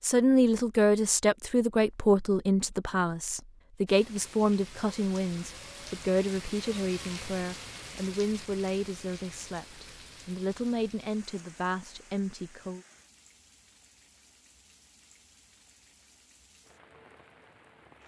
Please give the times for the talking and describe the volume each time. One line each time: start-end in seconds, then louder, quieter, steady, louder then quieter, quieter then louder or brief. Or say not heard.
0.0-12.8 quieter.